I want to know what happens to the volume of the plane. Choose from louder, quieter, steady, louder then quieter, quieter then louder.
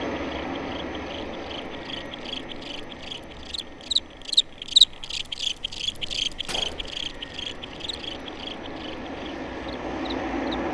quieter then louder.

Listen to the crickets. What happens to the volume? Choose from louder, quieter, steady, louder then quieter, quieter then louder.
louder then quieter.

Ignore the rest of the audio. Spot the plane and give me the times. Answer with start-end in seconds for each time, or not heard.
0.0-10.6.